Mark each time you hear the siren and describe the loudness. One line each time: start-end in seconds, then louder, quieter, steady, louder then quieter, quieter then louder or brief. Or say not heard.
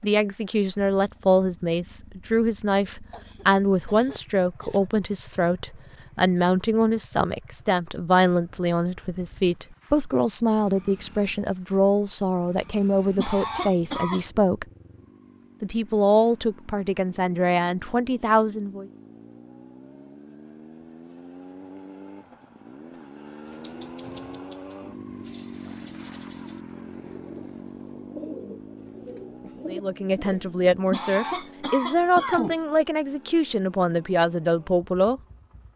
not heard.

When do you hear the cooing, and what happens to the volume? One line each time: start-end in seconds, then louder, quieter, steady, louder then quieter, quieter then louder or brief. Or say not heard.
23.4-30.5 louder.